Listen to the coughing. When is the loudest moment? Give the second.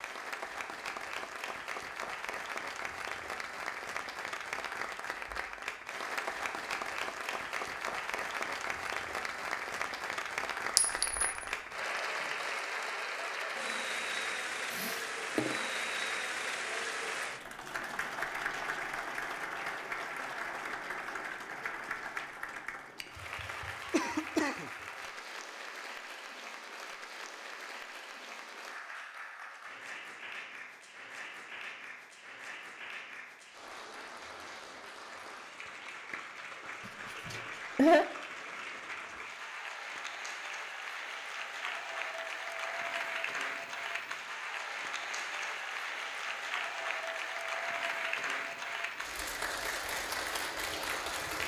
38 s.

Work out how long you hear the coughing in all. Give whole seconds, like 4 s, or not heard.
3 s.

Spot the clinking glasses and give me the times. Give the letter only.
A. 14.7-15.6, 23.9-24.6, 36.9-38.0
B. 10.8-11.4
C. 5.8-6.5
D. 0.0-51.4
B.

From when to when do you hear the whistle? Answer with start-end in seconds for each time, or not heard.
not heard.